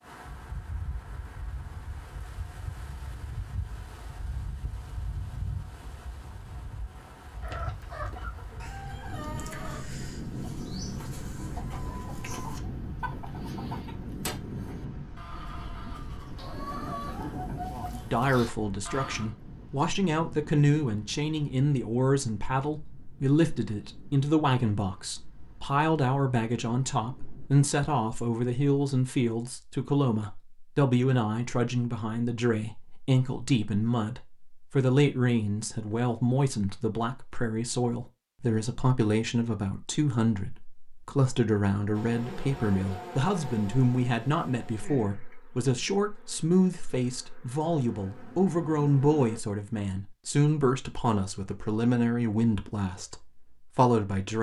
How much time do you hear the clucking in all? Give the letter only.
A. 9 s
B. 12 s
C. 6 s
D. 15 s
B.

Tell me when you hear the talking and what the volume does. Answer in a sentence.
The talking can be heard from 17.7 to 54.3 s, at a steady volume.